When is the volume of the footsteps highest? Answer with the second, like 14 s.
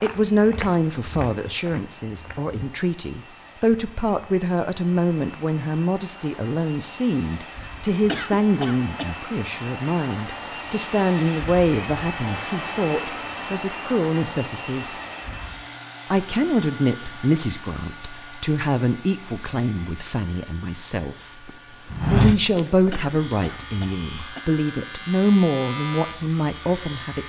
22 s.